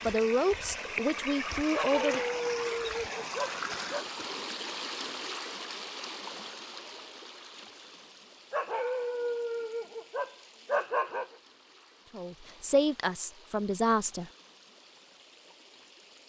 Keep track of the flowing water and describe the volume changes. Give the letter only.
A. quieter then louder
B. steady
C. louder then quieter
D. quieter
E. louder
D.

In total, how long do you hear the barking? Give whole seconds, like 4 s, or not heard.
5 s.